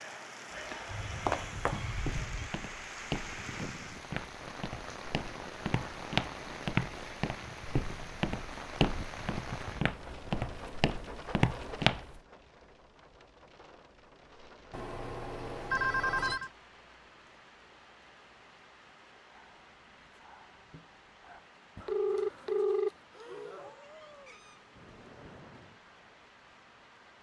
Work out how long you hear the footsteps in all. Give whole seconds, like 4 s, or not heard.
11 s.